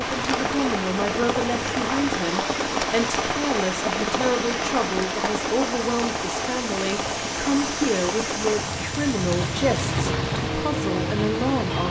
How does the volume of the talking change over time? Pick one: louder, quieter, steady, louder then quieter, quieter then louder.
steady.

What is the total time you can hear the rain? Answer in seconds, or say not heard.
12 s.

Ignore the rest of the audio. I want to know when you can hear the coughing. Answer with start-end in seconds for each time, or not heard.
not heard.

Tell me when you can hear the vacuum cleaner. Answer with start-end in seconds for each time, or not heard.
0.0-11.8.